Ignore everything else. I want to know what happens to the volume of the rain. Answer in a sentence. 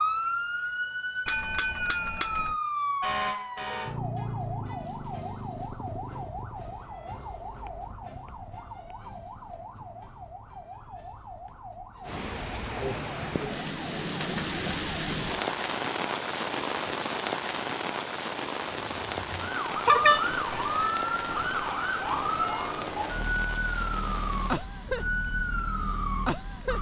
The loudness of the rain goes down.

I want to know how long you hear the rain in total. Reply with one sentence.
You can hear the rain for 15 seconds altogether.